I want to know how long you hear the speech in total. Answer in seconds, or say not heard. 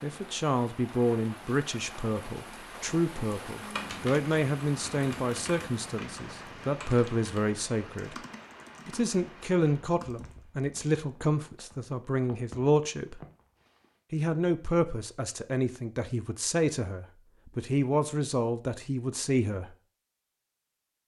18 s.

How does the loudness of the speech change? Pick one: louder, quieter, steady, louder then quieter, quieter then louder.
steady.